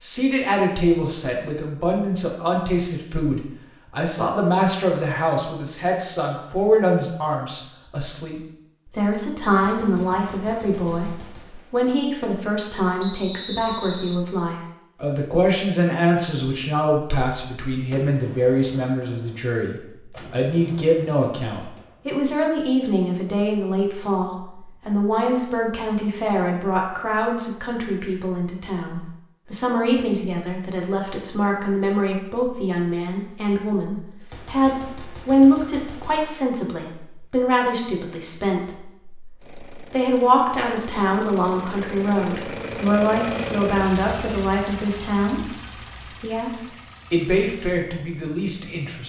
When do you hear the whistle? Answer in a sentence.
You can hear the whistle from 12.9 to 14.2 s.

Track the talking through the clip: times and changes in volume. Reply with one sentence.
The talking can be heard from 0.0 to 45.5 s, at a steady volume; and briefly from 46.2 to 49.0 s.